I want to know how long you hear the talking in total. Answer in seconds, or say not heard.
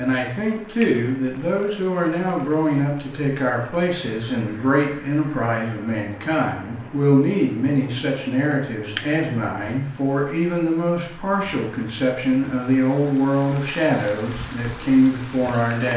16 s.